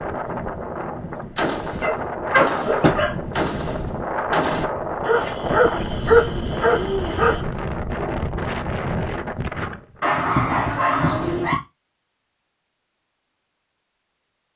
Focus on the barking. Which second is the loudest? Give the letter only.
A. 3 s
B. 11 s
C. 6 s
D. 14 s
C.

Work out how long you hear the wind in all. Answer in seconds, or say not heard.
10 s.